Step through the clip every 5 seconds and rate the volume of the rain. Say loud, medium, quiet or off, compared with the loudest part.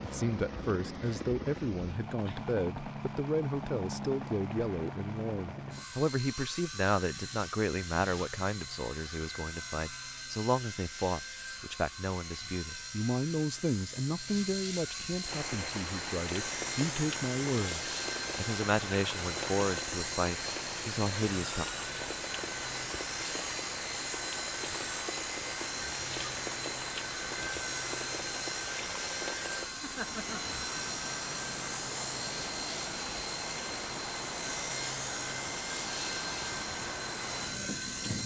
off, off, off, loud, loud, loud, loud, loud.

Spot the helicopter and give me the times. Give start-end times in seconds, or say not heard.
0.0-38.2.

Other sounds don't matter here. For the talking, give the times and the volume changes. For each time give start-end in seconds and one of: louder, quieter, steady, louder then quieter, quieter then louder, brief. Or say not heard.
0.0-21.6 steady.